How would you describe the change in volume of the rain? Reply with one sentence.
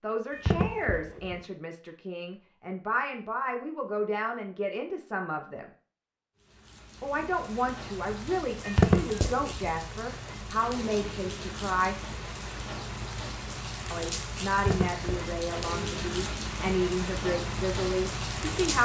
The volume of the rain goes up.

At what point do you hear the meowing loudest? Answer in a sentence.
The volume of the meowing peaks at 9 seconds.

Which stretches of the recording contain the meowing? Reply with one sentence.
The meowing can be heard from 0.3 to 1.4 s, from 8.7 to 9.7 s and from 14.5 to 15.3 s.